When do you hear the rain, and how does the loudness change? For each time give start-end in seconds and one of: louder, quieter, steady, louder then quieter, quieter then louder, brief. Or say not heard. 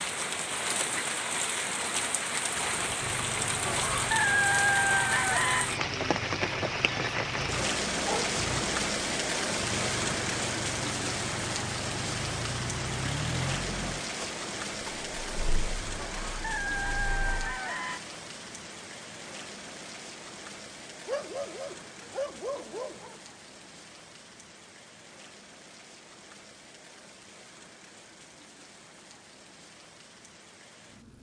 0.0-31.1 quieter.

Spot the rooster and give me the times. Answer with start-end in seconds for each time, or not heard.
3.6-5.7, 15.9-18.0.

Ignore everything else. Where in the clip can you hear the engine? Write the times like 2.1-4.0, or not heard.
2.6-17.6.